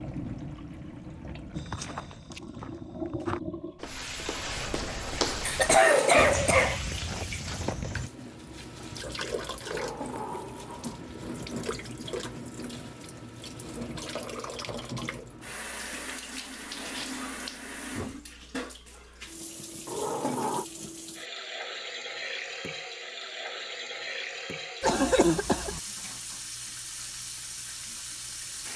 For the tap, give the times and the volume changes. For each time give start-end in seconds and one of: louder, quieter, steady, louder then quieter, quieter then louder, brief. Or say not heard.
0.0-28.7 steady.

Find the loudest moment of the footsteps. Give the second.
5 s.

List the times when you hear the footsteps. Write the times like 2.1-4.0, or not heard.
1.6-8.1.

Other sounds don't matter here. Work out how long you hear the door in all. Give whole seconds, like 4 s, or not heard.
3 s.